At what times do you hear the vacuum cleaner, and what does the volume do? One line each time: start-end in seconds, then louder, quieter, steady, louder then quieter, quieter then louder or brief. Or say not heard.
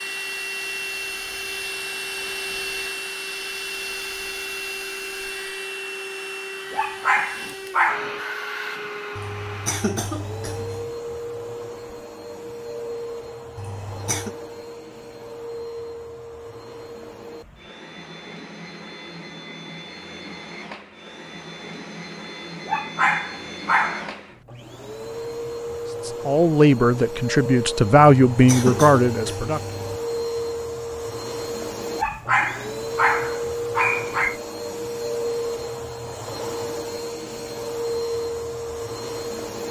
0.0-39.6 quieter then louder.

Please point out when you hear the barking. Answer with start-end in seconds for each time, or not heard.
6.7-8.2, 22.6-24.1, 31.9-34.4.